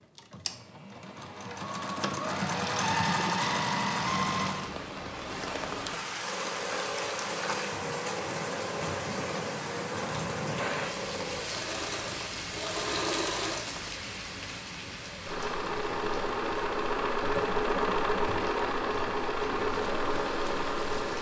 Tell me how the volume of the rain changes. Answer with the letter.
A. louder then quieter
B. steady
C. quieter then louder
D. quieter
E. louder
D.